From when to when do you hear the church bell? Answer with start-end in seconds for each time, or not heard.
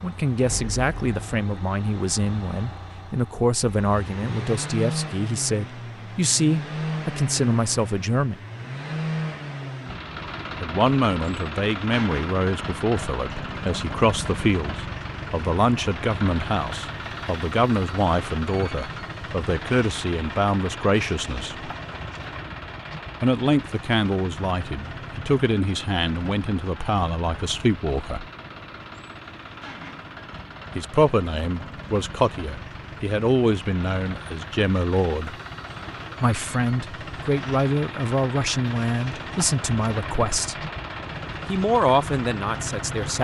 not heard.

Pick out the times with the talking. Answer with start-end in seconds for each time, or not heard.
0.0-8.4, 10.6-21.7, 23.2-28.2, 30.8-35.4, 36.2-40.5, 41.5-43.2.